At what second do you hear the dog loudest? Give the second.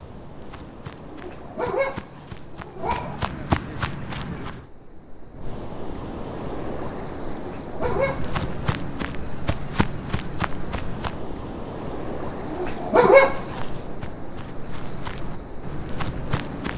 13 s.